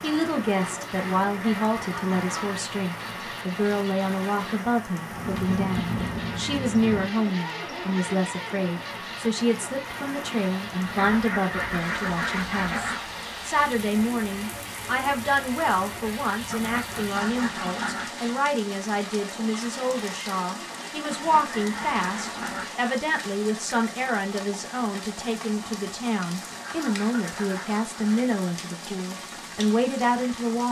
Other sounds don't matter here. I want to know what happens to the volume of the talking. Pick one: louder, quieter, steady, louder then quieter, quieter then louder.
steady.